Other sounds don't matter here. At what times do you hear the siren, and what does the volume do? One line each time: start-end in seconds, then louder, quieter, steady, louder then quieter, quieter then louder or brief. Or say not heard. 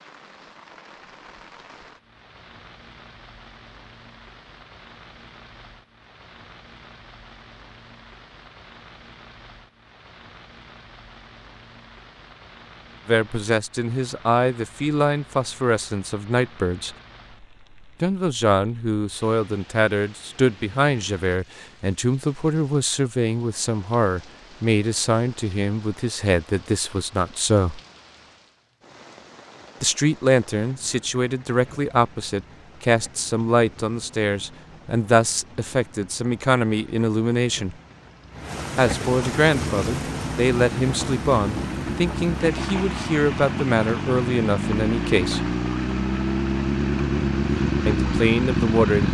not heard.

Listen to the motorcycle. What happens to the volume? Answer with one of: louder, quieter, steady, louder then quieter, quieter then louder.
louder.